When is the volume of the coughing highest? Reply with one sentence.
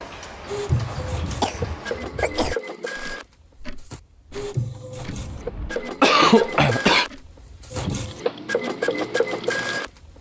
The loudest moment of the coughing is at 6 seconds.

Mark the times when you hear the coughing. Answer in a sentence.
You can hear the coughing from 0.9 to 2.5 s and from 5.2 to 7.0 s.